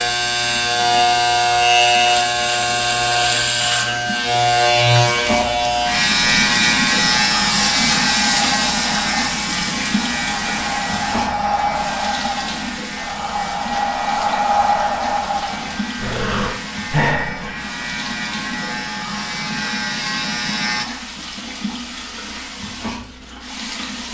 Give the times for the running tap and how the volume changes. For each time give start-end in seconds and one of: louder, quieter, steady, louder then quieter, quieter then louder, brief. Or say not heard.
0.0-24.1 louder then quieter.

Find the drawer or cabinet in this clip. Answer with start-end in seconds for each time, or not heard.
not heard.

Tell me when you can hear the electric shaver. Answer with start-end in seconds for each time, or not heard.
0.0-20.9.